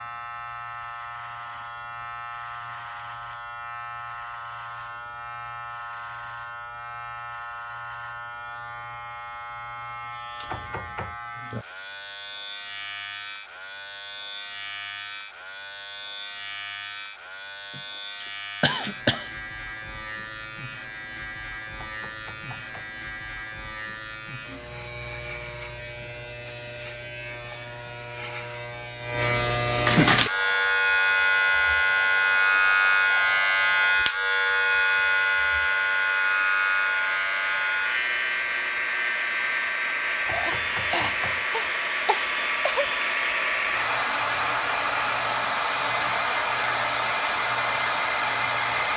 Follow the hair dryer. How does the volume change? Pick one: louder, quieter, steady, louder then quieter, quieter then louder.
louder.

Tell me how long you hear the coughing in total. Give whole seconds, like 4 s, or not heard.
4 s.